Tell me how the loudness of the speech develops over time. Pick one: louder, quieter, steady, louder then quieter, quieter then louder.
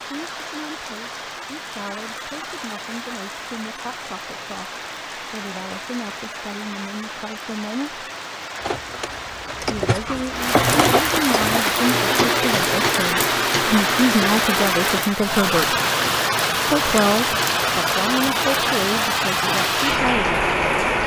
louder.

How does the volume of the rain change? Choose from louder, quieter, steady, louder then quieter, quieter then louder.
louder.